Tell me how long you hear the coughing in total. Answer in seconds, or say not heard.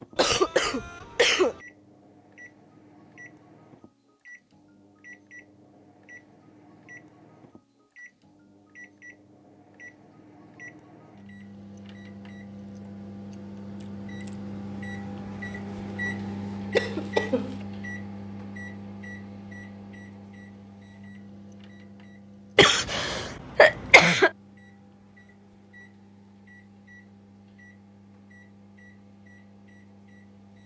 4 s.